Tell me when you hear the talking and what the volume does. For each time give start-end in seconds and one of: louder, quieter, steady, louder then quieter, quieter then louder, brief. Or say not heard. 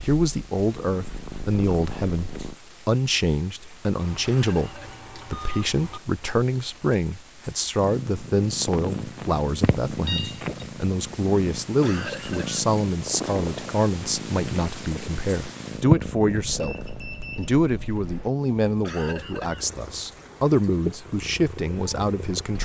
0.0-22.6 steady.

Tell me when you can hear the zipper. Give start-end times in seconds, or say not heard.
not heard.